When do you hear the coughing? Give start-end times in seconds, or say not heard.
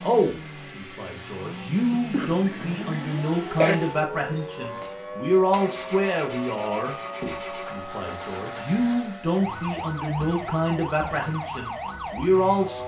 1.8-3.8.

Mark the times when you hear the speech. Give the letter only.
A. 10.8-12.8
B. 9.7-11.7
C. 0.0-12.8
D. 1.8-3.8
C.